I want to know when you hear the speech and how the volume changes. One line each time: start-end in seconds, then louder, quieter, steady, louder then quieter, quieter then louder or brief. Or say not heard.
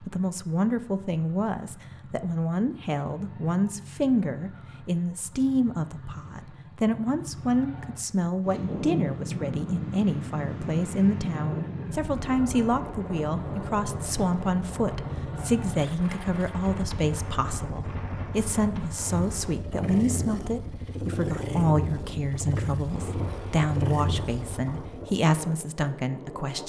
0.0-26.6 steady.